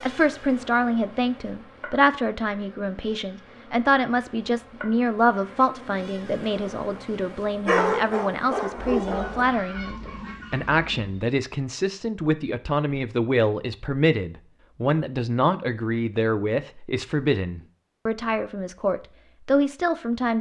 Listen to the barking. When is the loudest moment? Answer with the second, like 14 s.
8 s.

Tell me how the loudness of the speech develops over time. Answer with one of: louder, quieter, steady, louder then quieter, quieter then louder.
steady.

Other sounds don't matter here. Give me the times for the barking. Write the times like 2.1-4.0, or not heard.
7.7-9.4.